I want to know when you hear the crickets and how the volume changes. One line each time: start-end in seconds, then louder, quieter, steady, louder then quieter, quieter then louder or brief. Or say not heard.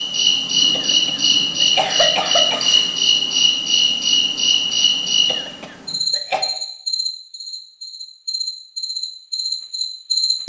0.0-10.4 quieter.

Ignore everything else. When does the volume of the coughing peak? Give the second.
2 s.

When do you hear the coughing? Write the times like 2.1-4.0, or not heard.
0.7-2.6, 5.2-6.5.